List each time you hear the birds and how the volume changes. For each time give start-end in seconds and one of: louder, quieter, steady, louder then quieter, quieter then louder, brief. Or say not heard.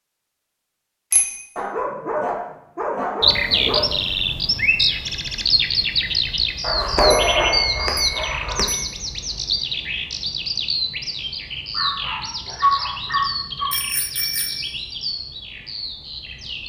3.2-16.6 quieter.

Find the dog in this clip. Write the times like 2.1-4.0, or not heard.
1.6-4.0, 6.6-8.7, 11.8-13.8.